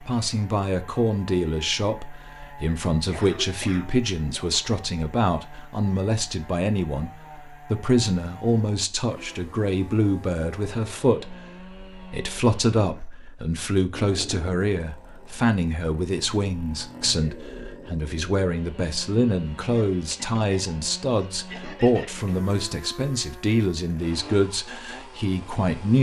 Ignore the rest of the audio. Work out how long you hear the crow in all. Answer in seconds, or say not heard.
not heard.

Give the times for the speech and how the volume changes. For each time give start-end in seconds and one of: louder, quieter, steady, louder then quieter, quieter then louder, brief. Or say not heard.
0.0-25.9 steady.